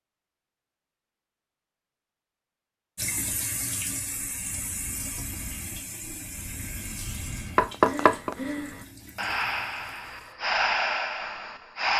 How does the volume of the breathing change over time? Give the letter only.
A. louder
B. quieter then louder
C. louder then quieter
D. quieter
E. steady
A.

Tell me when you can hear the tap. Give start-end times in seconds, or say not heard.
3.0-10.3.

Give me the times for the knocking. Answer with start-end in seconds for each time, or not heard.
7.5-8.3.